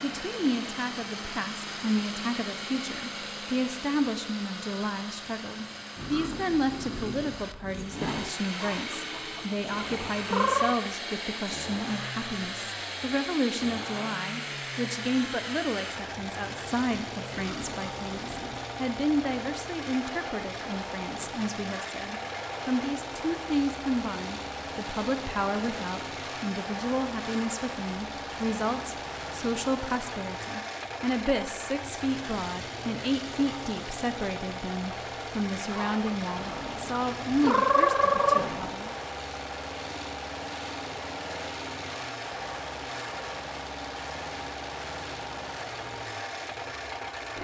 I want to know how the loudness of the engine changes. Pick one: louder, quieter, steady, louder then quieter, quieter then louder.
steady.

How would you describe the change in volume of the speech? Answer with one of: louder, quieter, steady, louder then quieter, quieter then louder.
steady.